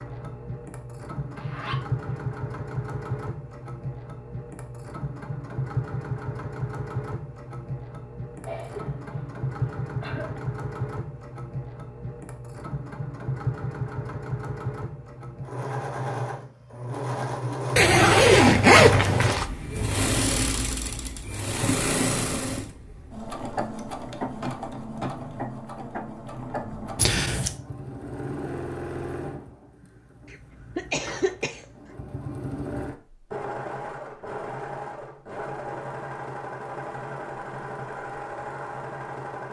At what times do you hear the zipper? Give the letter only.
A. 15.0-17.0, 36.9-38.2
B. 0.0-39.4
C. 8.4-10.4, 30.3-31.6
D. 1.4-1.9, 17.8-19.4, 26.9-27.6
D.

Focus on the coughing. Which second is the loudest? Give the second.
31 s.